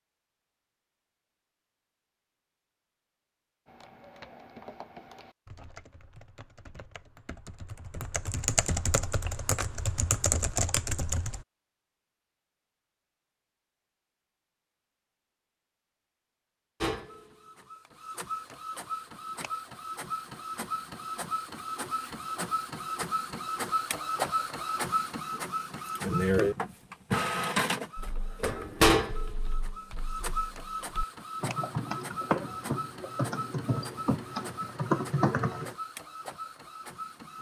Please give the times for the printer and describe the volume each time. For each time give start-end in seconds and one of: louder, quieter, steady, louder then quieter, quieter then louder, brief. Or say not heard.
16.8-37.3 louder then quieter.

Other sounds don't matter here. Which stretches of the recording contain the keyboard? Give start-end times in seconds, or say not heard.
3.6-11.4, 27.9-35.8.